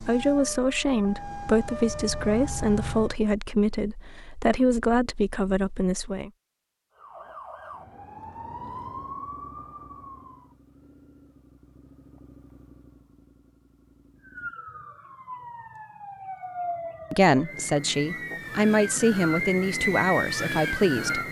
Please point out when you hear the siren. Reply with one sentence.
You can hear the siren from 0.0 to 3.2 s, from 6.9 to 10.6 s and from 14.2 to 21.2 s.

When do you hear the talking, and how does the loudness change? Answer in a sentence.
You can hear the talking from 0.0 to 6.3 s, at a steady volume; and from 17.1 to 21.2 s, getting louder then quieter.